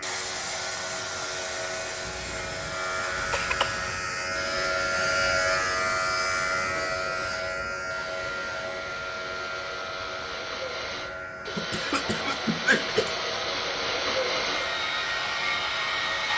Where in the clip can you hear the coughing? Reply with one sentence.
The coughing can be heard from 2.0 to 4.0 s and from 11.4 to 13.1 s.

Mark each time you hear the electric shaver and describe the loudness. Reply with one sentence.
You can hear the electric shaver from 0.0 to 16.3 s, getting louder then quieter.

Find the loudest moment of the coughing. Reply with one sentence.
The volume of the coughing peaks at 13 seconds.